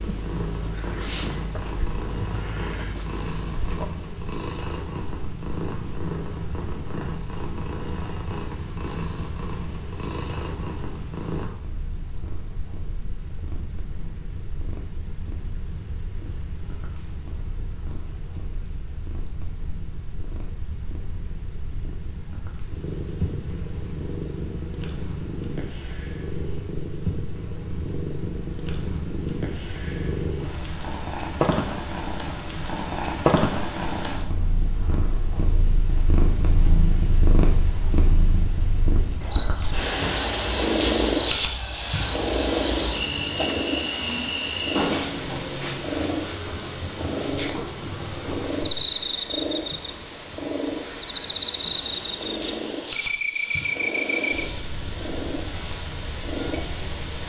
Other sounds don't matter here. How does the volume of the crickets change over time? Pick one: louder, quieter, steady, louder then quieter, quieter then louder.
steady.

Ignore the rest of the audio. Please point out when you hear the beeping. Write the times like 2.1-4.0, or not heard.
not heard.